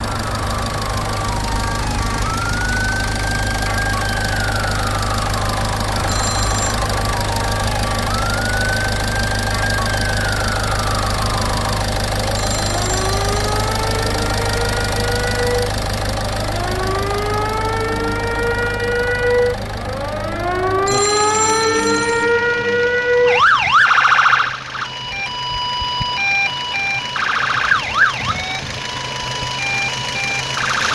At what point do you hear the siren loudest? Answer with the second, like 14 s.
24 s.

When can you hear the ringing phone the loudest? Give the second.
21 s.